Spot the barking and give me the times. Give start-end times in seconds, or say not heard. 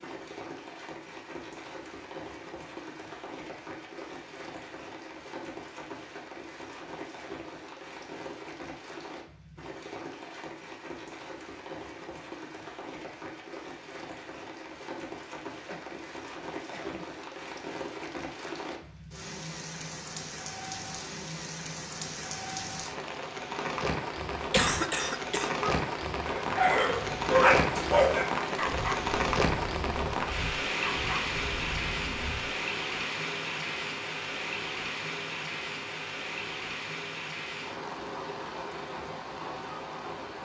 25.6-32.5.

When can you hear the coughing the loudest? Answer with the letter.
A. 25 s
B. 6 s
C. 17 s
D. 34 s
A.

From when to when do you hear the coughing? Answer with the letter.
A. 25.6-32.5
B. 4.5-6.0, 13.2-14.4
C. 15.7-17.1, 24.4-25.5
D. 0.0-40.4
C.